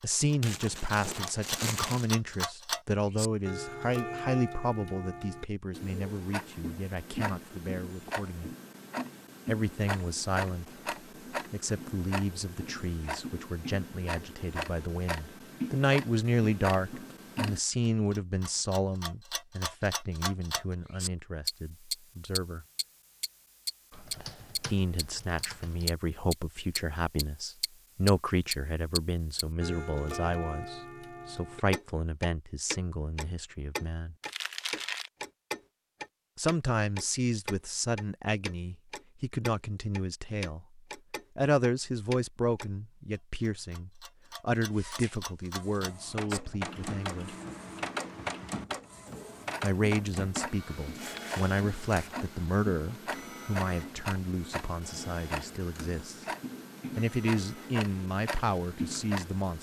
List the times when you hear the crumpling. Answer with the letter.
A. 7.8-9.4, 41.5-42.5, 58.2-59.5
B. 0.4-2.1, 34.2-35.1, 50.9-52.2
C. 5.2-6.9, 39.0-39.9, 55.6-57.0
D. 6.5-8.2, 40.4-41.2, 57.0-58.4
B.